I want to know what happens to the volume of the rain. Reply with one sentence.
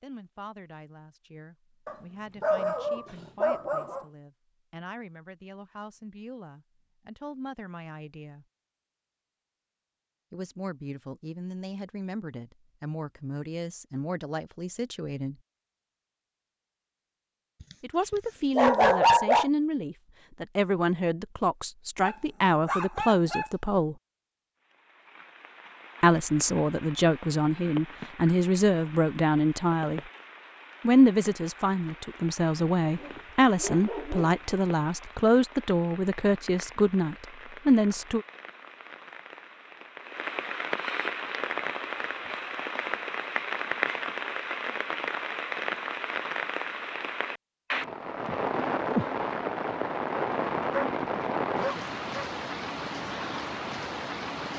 The loudness of the rain goes up.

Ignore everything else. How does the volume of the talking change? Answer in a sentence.
The loudness of the talking goes up.